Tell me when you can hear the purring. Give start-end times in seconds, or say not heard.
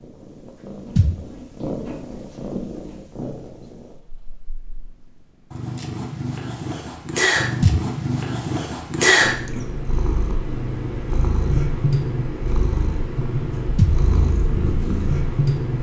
0.0-15.7.